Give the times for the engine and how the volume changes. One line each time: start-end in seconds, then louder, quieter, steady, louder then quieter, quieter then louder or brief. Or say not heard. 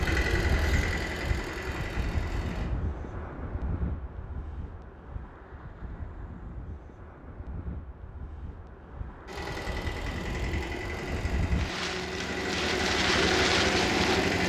0.0-2.7 brief
9.2-14.4 louder.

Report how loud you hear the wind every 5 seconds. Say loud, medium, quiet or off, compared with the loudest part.
medium, quiet, loud.